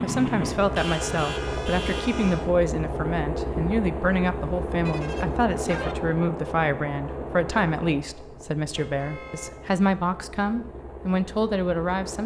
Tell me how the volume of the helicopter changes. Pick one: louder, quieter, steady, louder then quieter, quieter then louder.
quieter.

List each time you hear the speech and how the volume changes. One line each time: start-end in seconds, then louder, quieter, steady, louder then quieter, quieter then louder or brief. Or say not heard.
0.0-12.2 steady.